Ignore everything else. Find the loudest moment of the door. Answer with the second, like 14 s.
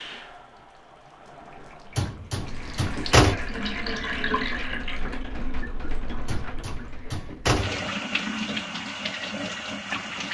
3 s.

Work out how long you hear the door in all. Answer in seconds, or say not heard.
3 s.